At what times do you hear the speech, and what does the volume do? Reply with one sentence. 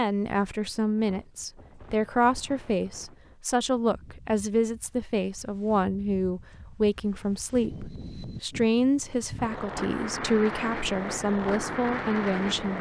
You can hear the speech from 0.0 to 12.7 s, at a steady volume.